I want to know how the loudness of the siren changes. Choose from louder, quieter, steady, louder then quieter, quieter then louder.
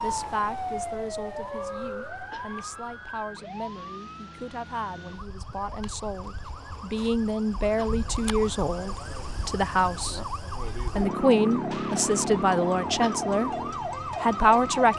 quieter then louder.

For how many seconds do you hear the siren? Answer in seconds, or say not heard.
15 s.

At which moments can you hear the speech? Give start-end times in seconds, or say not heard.
0.0-10.2, 10.9-13.5, 14.2-14.9.